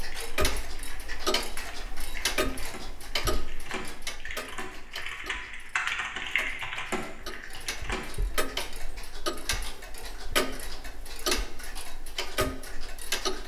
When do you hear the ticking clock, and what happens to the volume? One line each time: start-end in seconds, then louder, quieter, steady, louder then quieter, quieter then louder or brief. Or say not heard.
0.0-13.4 quieter then louder.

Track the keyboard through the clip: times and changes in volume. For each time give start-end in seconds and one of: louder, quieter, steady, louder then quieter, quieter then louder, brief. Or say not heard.
0.0-8.1 louder.